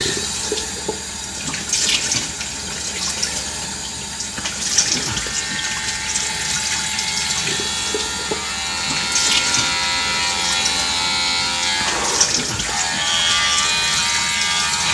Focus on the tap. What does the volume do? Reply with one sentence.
The volume of the tap stays about the same.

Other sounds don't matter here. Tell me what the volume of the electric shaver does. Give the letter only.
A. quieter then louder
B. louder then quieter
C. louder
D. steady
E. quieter
C.